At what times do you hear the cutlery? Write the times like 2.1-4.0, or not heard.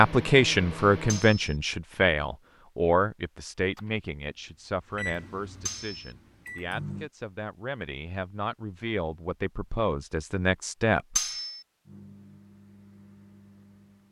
1.1-1.6, 5.7-6.1, 11.2-11.6.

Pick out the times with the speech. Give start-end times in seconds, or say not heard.
0.0-11.2.